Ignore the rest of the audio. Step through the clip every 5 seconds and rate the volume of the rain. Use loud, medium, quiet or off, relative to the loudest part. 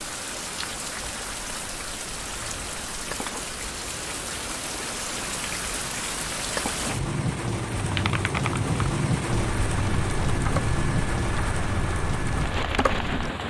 medium, loud, loud.